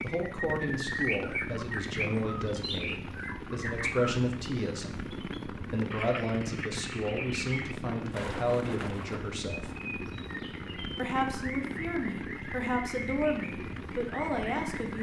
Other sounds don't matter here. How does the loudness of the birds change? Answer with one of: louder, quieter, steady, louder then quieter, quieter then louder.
quieter.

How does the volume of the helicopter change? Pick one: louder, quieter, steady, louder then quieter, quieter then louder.
steady.